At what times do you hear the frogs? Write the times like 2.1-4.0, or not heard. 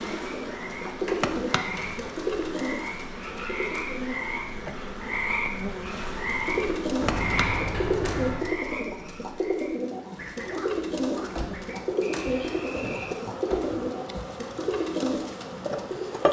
0.0-13.2.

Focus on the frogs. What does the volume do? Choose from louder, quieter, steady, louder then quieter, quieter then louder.
louder then quieter.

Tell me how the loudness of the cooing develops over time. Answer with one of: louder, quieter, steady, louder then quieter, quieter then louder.
steady.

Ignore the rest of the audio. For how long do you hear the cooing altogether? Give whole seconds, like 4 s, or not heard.
14 s.